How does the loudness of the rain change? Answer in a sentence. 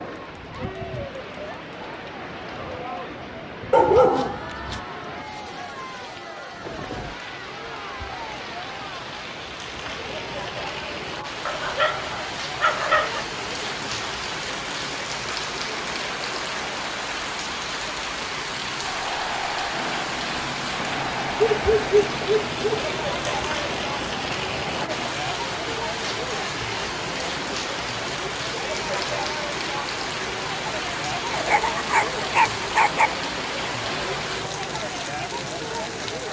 The loudness of the rain goes up.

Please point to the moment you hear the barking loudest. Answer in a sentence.
The loudest moment of the barking is at 4 seconds.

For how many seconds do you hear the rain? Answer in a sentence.
The rain can be heard for 36 seconds in total.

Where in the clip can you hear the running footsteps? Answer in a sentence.
You can't hear the running footsteps here.